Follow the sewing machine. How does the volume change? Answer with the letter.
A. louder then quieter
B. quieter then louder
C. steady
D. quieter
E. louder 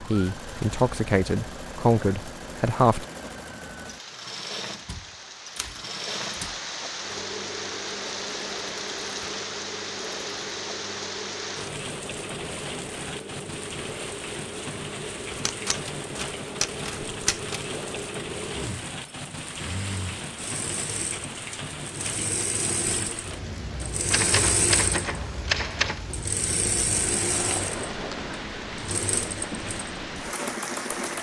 E.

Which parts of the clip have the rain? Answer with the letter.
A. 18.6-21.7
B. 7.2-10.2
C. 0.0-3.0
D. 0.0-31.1
D.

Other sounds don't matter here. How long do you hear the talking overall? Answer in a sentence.
You can hear the talking for 3 seconds altogether.